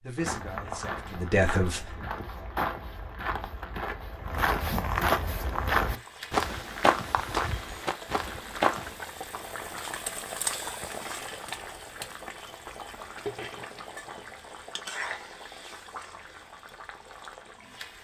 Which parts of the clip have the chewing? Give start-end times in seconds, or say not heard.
not heard.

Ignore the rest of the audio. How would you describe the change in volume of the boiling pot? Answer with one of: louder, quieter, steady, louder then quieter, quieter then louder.
louder then quieter.